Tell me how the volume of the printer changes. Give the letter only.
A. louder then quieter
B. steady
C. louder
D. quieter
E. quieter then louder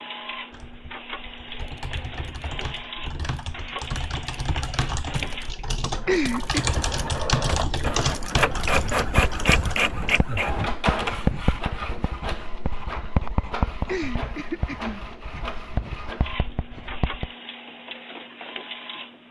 A.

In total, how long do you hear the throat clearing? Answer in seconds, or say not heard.
2 s.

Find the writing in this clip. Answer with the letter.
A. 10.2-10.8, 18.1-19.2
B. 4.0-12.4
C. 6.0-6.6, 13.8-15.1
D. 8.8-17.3
D.